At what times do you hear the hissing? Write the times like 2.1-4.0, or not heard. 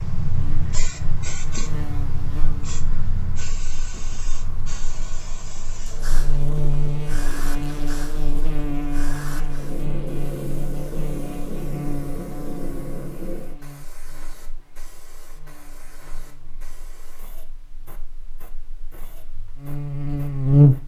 0.0-20.8.